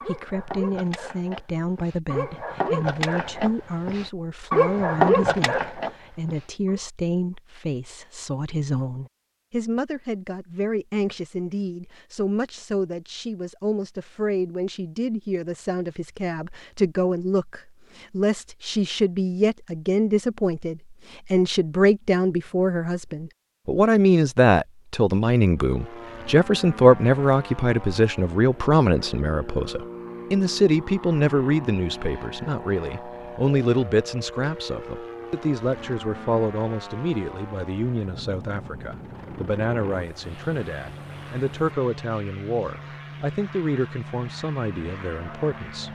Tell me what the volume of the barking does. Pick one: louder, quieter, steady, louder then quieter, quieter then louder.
louder.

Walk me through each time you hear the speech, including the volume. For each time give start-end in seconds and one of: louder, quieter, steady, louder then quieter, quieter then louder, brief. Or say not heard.
0.1-45.9 louder then quieter.